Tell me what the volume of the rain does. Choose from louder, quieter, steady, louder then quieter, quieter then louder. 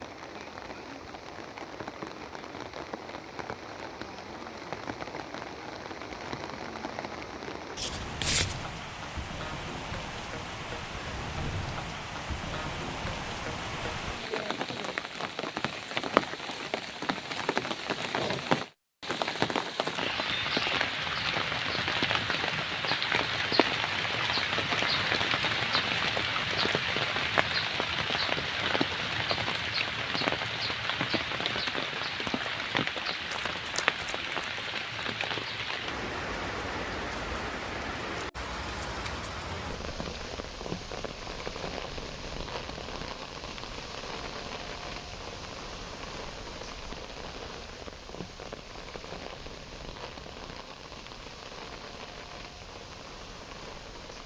louder then quieter.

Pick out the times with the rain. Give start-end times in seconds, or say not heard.
0.0-54.2.